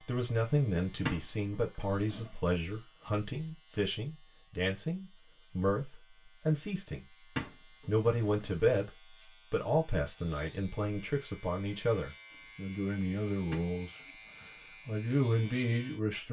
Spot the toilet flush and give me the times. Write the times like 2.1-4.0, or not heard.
1.1-2.3, 7.3-8.5, 13.5-14.4.